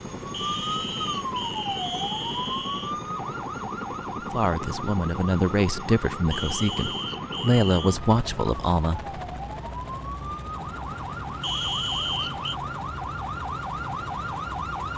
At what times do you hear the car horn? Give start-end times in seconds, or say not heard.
not heard.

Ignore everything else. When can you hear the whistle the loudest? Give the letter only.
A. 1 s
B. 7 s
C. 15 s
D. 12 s
D.